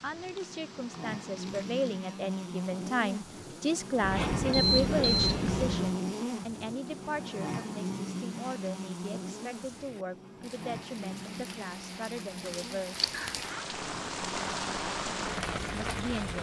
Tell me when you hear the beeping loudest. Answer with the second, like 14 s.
5 s.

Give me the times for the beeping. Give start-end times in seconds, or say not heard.
4.0-6.0.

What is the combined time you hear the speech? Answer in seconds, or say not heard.
14 s.